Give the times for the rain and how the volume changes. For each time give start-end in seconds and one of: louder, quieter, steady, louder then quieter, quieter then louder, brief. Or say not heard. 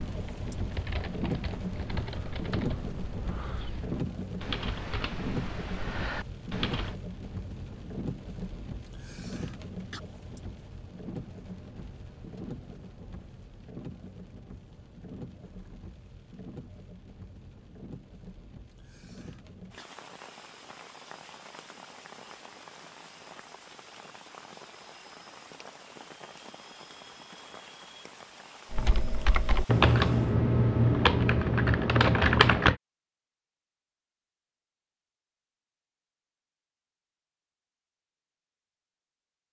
0.0-30.4 quieter.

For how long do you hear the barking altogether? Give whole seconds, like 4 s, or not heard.
not heard.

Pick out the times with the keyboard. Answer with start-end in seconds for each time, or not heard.
0.0-7.0, 28.7-32.8.